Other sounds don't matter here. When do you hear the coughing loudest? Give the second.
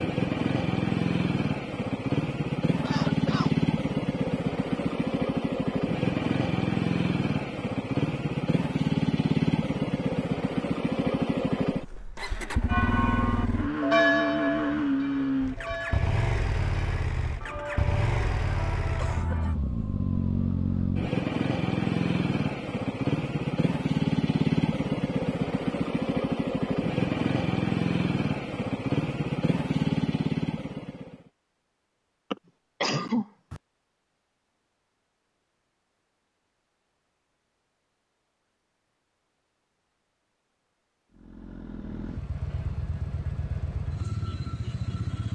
33 s.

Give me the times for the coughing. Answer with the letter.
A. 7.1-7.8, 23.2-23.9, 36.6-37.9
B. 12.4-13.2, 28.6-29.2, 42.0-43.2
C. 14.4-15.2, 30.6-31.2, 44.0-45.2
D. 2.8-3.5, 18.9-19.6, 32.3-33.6
D.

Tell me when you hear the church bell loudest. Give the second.
14 s.